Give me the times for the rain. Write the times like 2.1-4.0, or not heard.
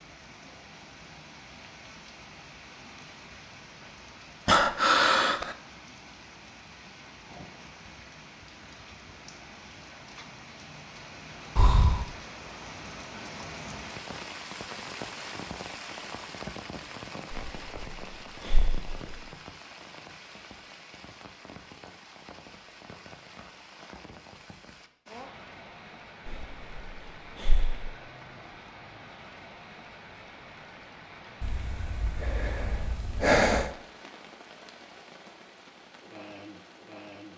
0.0-37.3.